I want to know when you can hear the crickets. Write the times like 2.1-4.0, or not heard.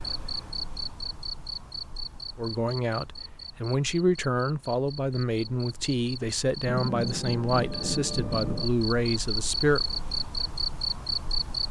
0.0-11.6.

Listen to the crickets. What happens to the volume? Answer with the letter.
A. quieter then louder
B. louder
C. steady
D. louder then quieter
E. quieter
A.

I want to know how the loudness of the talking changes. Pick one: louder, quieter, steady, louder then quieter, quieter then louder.
steady.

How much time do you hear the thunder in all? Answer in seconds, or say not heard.
2 s.